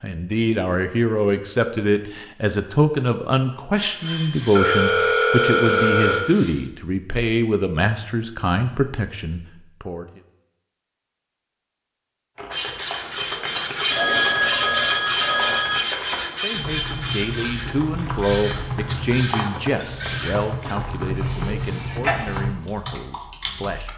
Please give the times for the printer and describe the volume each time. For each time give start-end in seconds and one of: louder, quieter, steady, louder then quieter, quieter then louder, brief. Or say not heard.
3.8-6.5 brief
12.5-22.4 quieter.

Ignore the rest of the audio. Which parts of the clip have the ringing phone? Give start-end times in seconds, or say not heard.
4.5-6.2, 13.9-15.8.